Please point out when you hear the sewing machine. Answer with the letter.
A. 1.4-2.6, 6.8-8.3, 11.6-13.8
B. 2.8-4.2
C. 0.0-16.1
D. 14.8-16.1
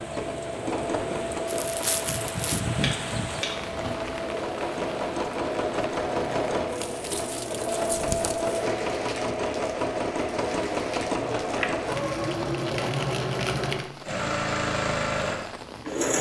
C.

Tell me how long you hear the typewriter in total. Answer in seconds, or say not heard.
not heard.